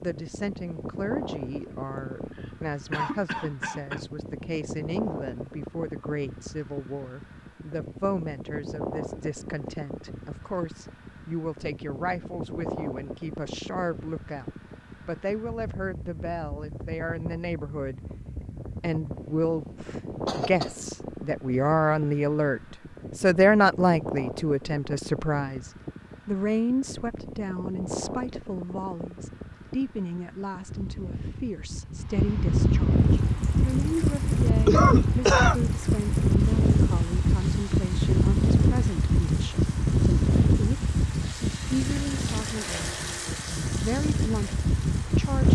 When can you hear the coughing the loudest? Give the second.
35 s.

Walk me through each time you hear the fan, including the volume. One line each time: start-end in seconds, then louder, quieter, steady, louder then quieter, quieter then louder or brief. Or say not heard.
0.0-45.5 louder.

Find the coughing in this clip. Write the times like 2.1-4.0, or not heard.
2.1-4.0, 20.2-20.8, 34.6-35.6.